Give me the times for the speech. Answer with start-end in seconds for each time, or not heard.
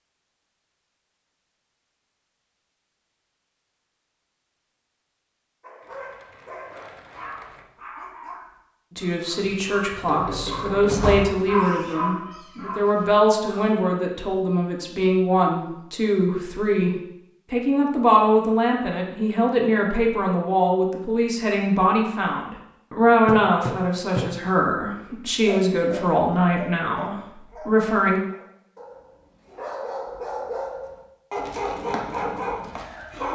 8.9-28.2.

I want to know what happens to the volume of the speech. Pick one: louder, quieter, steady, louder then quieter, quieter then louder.
steady.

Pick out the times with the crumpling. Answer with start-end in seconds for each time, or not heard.
5.8-7.7.